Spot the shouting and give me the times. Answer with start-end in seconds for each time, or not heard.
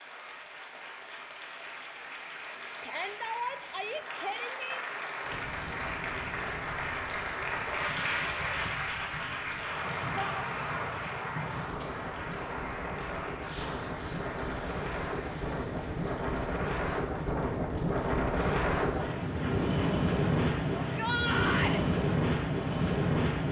2.8-4.8, 10.2-11.0, 20.8-21.8.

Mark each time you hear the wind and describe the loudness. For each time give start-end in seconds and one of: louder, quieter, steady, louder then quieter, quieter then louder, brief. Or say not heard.
5.2-23.4 louder.